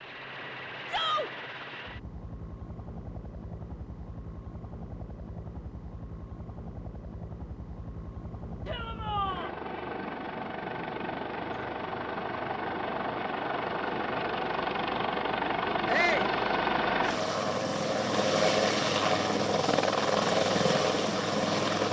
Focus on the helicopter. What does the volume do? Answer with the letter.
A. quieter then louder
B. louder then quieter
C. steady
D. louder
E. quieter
D.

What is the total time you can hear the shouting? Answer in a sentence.
You can hear the shouting for 2 seconds altogether.